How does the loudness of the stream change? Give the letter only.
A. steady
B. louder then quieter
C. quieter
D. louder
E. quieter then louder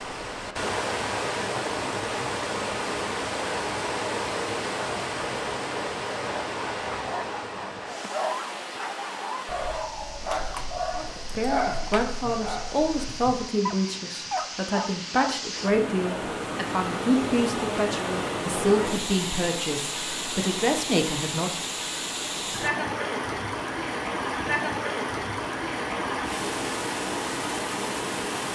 E.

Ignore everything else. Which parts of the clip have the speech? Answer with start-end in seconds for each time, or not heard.
10.9-21.6.